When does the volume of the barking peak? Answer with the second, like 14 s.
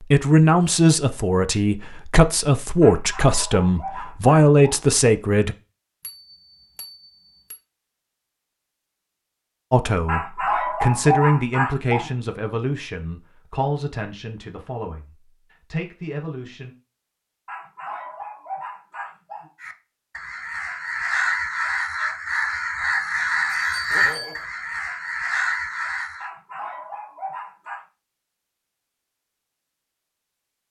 11 s.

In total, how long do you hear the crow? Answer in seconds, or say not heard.
7 s.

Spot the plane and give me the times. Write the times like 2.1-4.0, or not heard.
not heard.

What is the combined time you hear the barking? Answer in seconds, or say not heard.
8 s.